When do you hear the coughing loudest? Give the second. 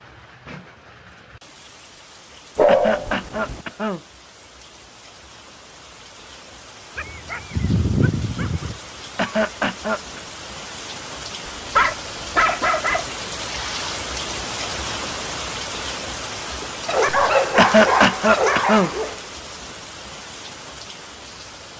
18 s.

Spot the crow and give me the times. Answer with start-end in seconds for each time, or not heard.
not heard.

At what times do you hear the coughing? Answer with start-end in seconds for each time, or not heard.
2.6-4.0, 9.2-10.2, 17.6-18.9.